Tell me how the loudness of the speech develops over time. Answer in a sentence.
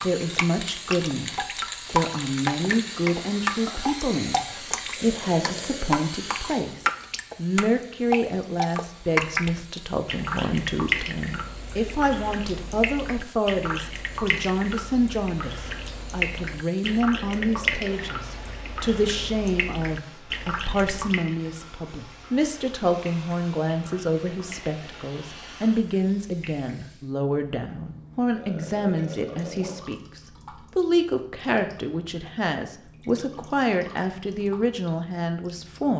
The loudness of the speech stays about the same.